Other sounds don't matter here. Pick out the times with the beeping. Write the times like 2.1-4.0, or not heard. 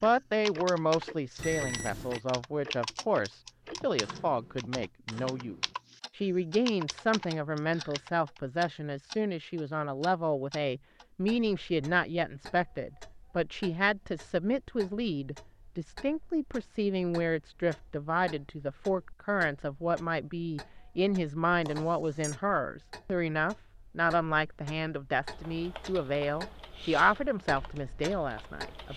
1.4-2.2, 21.6-22.4.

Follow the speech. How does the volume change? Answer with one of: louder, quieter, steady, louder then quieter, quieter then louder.
steady.